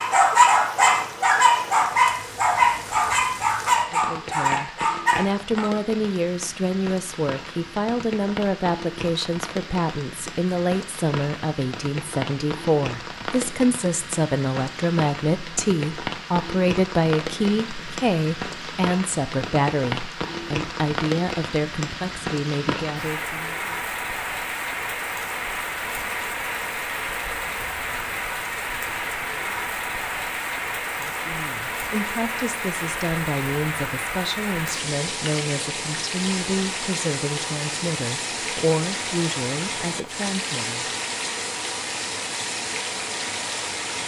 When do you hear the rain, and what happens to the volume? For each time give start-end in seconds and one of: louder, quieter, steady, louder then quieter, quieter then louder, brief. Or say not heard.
0.0-44.0 louder.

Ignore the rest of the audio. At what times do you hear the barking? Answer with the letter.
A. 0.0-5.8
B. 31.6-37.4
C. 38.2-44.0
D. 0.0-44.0
A.